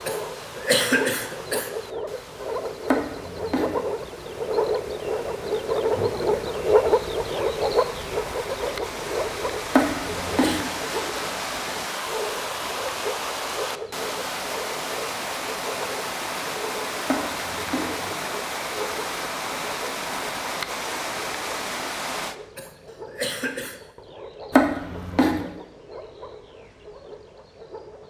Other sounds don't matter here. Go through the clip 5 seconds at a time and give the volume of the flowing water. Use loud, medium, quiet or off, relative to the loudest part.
quiet, medium, loud, loud, loud, off.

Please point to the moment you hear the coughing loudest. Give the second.
1 s.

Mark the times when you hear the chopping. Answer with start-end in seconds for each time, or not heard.
2.9-3.8, 9.7-10.6, 17.1-17.9, 24.5-25.4.